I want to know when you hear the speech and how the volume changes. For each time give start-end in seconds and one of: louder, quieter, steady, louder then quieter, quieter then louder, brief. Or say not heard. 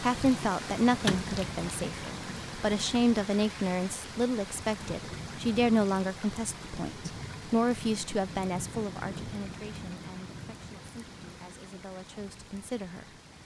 0.0-13.1 quieter.